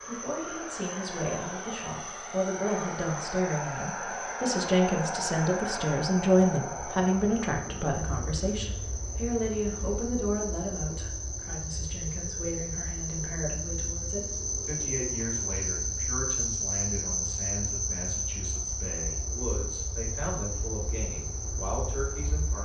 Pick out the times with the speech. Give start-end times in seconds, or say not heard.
0.1-22.6.